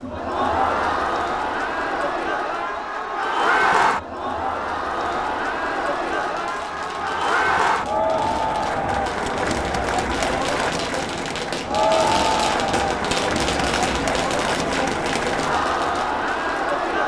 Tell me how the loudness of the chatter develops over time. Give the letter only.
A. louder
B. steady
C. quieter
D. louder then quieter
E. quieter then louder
B.